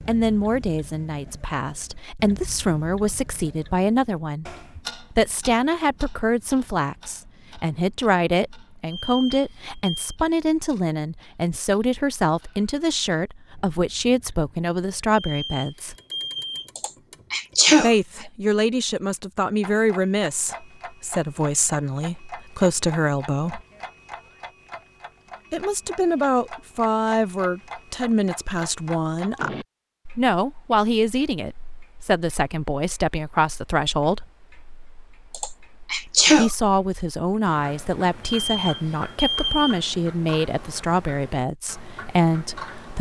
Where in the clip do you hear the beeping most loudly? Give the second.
39 s.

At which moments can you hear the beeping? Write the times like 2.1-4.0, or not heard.
8.9-10.1, 15.2-16.7, 38.4-39.8.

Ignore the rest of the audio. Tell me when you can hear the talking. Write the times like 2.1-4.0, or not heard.
0.1-15.9, 17.8-23.6, 25.5-29.5, 30.1-34.3, 36.3-42.9.